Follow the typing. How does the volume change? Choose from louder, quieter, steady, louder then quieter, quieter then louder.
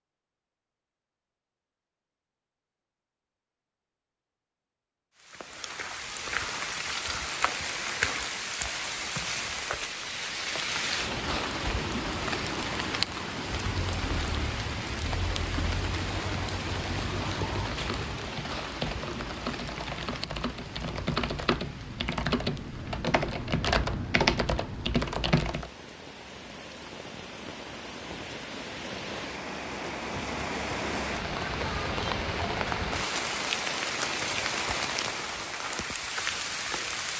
louder.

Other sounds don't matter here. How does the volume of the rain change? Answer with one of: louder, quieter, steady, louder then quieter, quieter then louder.
quieter then louder.